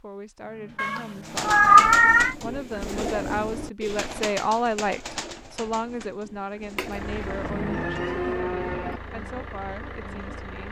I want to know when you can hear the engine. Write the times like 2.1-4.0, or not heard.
6.8-10.6.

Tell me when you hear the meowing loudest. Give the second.
2 s.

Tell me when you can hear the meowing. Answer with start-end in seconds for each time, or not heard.
0.8-2.4, 6.8-8.3.